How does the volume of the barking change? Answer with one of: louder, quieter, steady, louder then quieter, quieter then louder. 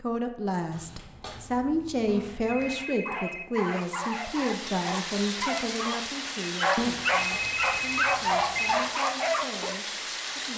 louder.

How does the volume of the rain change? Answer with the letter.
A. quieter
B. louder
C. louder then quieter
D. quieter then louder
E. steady
E.